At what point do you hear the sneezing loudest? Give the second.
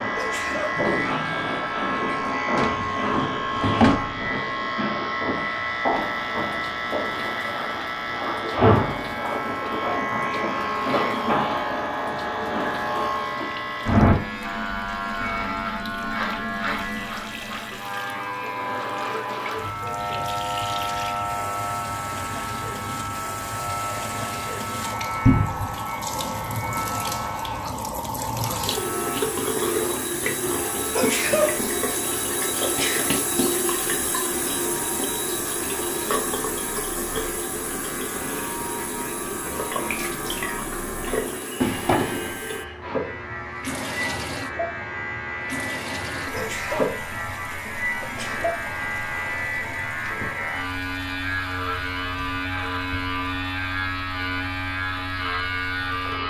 31 s.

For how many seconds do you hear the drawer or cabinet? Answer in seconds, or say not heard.
3 s.